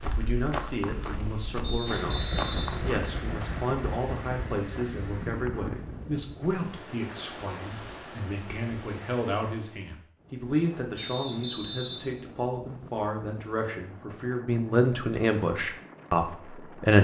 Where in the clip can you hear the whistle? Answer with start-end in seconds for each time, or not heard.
1.6-3.6, 10.9-12.2.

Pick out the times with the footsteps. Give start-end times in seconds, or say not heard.
0.0-3.6.